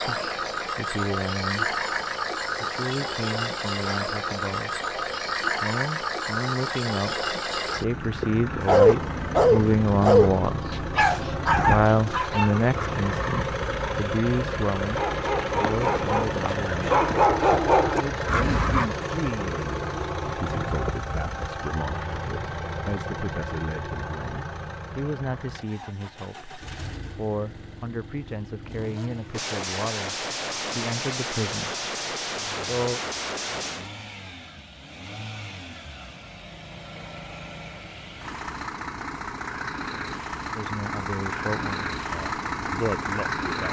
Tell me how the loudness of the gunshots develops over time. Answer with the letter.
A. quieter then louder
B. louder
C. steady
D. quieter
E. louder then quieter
C.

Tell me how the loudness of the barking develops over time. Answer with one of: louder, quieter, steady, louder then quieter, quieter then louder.
quieter then louder.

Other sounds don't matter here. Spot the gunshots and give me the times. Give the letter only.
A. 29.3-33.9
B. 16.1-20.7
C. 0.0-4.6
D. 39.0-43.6
A.